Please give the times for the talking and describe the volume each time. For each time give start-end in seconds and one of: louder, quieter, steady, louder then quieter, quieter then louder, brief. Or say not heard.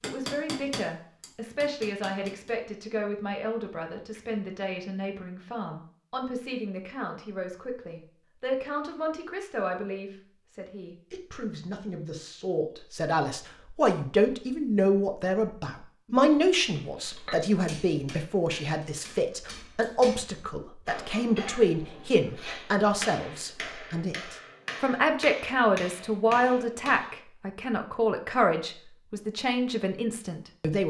0.0-30.8 louder.